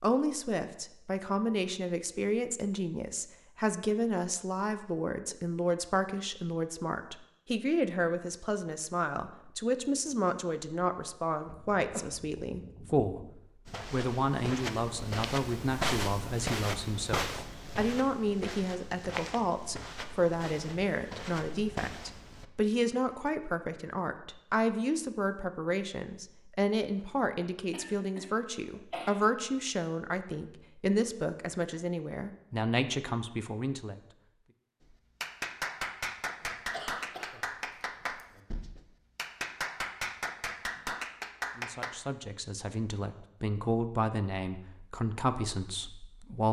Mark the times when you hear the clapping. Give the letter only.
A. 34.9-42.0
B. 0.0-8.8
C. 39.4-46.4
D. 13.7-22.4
A.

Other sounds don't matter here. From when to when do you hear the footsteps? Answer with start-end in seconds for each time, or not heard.
13.7-22.4.